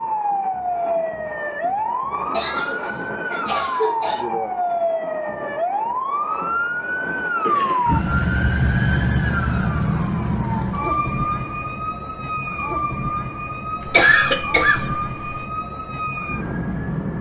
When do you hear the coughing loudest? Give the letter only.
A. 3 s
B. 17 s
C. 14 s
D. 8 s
C.